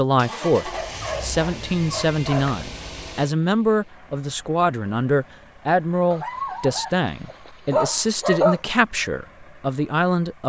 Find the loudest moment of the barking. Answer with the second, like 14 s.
8 s.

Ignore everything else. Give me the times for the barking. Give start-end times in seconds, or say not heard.
0.7-2.6, 6.1-8.6.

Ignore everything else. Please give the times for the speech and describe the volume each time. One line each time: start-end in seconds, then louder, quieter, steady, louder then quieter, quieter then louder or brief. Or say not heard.
0.0-10.4 steady.